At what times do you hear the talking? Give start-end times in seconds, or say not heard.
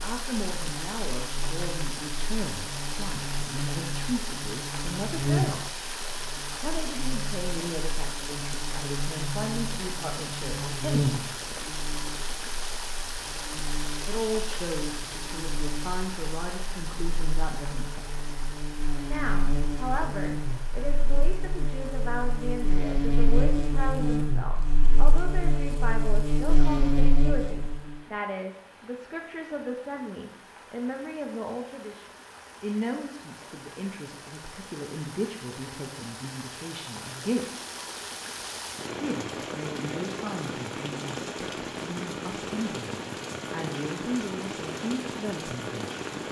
0.0-5.7, 6.6-11.8, 14.1-18.1, 19.1-37.5, 39.0-46.0.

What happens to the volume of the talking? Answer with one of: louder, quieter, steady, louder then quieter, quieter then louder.
steady.